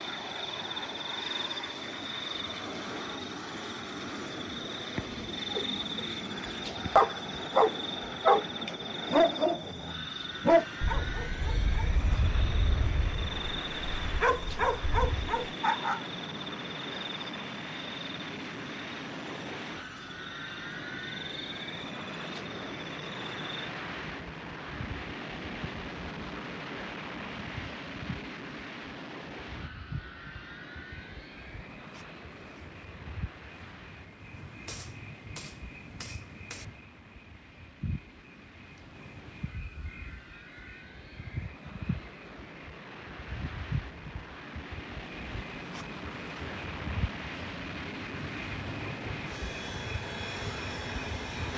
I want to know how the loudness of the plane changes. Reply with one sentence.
The loudness of the plane goes down, then up.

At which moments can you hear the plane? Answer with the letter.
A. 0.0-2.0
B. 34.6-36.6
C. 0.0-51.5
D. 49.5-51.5
C.